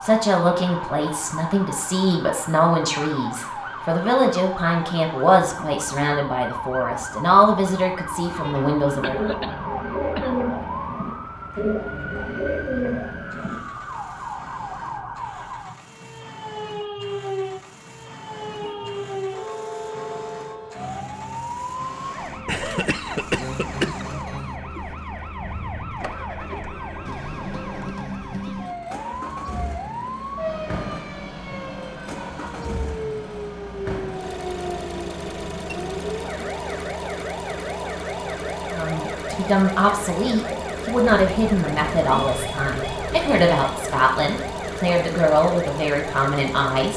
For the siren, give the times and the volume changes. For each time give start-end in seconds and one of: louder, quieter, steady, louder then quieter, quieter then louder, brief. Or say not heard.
0.0-46.9 steady.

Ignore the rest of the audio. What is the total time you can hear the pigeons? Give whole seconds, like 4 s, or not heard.
5 s.